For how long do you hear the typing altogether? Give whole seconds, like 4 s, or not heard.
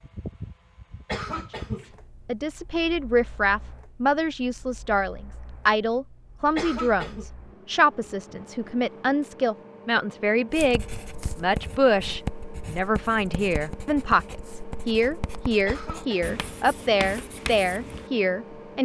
not heard.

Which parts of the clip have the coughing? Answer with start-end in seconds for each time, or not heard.
1.1-1.9, 6.5-7.3, 15.7-16.4.